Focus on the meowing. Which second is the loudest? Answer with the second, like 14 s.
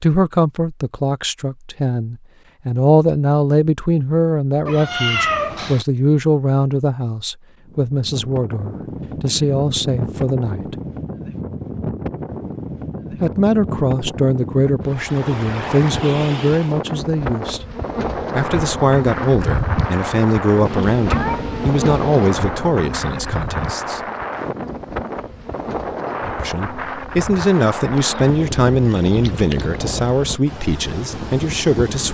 5 s.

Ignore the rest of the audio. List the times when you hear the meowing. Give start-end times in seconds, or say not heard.
4.7-5.8, 20.6-22.4.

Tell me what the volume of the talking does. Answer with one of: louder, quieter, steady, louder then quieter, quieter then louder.
steady.